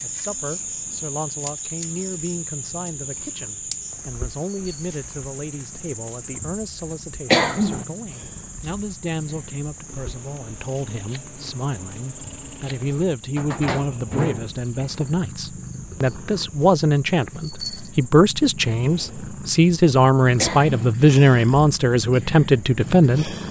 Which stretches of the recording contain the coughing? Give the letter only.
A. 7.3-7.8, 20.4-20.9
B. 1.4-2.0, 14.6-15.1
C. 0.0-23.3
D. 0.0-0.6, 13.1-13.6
A.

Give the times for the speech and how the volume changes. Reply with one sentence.
The speech can be heard from 0.0 to 23.3 s, getting louder.